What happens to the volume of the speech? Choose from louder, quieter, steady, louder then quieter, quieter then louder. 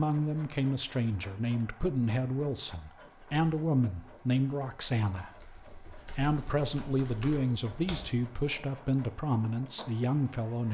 steady.